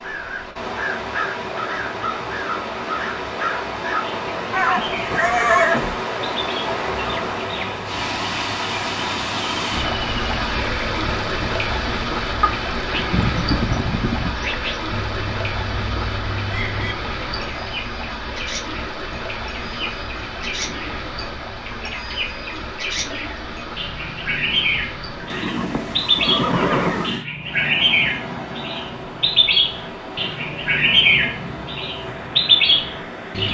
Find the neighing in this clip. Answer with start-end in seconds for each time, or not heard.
4.5-6.0, 13.1-14.3, 25.3-27.2.